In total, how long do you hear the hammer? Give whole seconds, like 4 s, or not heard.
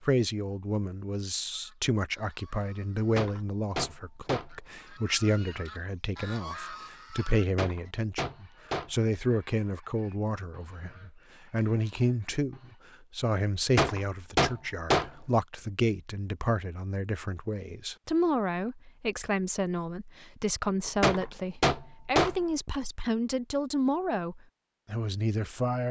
6 s.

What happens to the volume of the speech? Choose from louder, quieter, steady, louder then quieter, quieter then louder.
steady.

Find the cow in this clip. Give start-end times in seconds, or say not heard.
not heard.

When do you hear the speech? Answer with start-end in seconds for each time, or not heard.
0.0-25.8.